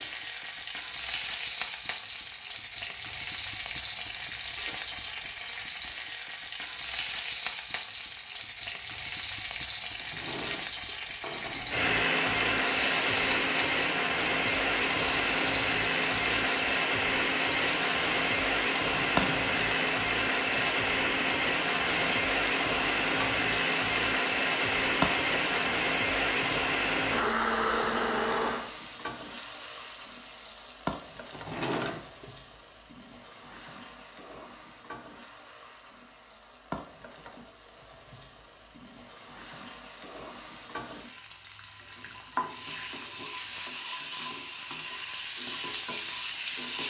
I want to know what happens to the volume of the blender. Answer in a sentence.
The loudness of the blender stays about the same.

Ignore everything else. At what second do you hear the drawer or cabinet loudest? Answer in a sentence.
The volume of the drawer or cabinet peaks at 32 seconds.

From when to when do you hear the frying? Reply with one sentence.
You can hear the frying from 0.0 to 46.8 s.